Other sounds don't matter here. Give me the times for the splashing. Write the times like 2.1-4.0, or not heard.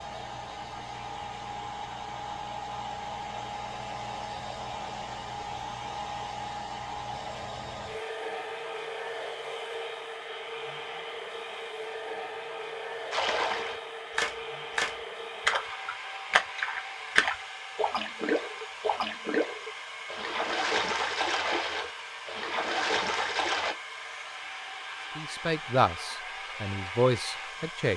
13.1-23.8.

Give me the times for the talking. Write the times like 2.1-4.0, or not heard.
25.1-27.9.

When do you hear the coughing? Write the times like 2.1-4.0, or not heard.
not heard.